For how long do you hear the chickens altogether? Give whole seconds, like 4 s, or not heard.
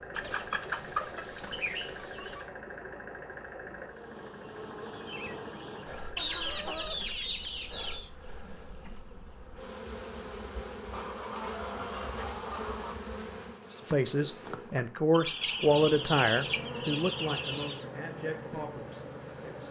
9 s.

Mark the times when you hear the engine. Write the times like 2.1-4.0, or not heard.
0.0-7.2, 15.8-19.6.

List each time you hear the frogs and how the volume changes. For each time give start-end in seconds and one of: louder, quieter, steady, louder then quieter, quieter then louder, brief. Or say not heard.
not heard.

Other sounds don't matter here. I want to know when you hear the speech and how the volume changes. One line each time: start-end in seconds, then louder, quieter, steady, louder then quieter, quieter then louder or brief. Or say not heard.
13.8-19.6 quieter.